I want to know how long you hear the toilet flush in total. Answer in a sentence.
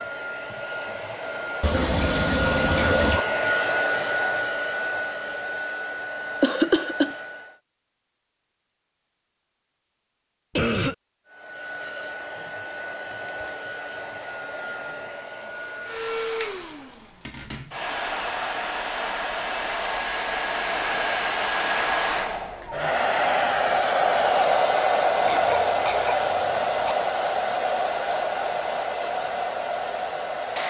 The toilet flush can be heard for 2 seconds in total.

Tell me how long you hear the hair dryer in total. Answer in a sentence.
The hair dryer can be heard for 27 seconds in total.